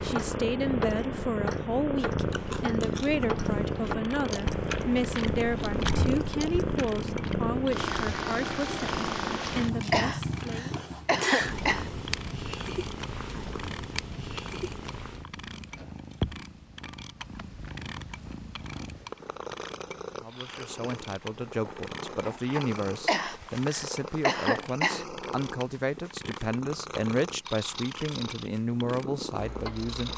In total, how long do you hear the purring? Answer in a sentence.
The purring can be heard for 30 seconds in total.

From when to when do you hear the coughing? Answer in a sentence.
You can hear the coughing from 9.9 to 11.9 s and from 23.1 to 25.1 s.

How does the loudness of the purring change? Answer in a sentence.
The loudness of the purring goes down.